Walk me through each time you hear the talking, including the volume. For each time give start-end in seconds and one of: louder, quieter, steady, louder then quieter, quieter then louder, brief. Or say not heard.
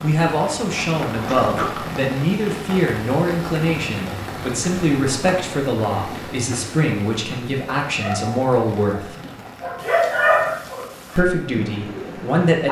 0.0-9.2 steady
11.2-12.6 brief.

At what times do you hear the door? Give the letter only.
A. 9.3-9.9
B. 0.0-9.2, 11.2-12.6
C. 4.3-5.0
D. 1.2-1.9
D.